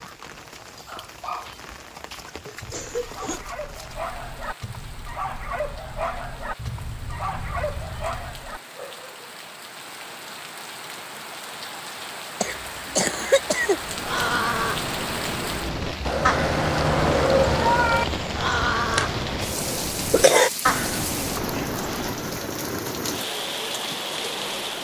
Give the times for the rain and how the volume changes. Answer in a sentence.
You can hear the rain from 0.0 to 24.7 s, getting louder.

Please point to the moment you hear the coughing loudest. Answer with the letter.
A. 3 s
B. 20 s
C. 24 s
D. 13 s
B.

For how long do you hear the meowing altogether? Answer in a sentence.
You can hear the meowing for 4 seconds altogether.